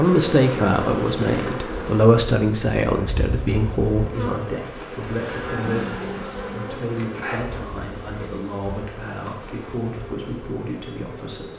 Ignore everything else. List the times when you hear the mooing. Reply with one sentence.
You can hear the mooing from 5.3 to 6.7 s.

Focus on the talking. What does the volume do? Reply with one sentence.
The volume of the talking goes down.